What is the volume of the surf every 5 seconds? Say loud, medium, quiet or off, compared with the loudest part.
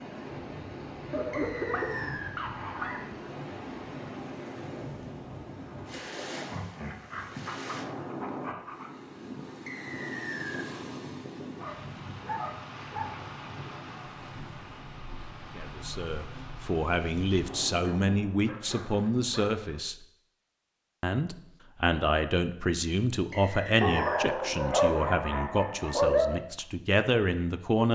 loud, loud, loud, loud, off, off.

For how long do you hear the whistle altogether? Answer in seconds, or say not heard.
3 s.